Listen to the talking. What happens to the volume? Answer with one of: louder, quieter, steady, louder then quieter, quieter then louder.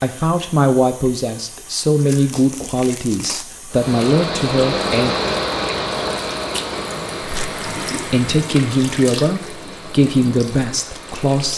steady.